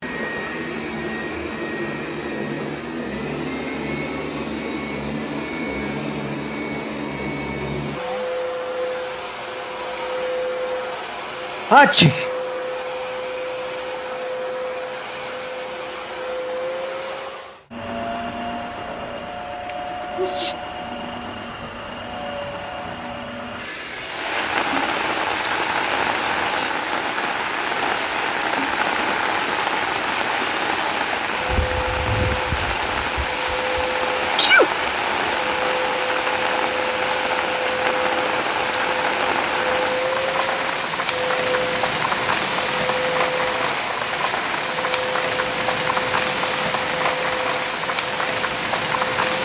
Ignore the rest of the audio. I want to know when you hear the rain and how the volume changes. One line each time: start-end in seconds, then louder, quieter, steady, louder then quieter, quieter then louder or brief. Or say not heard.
24.1-49.4 steady.